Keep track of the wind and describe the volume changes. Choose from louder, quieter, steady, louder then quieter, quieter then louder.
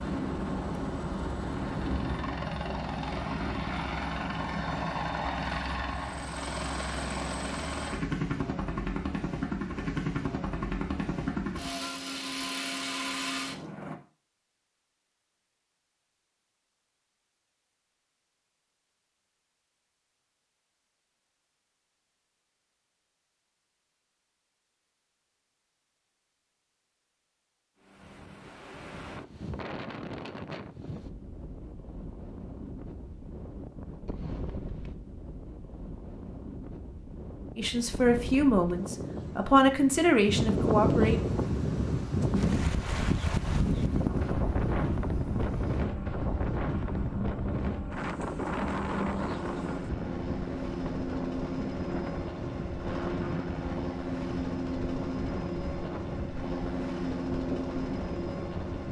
louder then quieter.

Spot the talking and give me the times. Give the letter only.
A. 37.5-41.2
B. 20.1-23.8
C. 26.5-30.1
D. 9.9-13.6
A.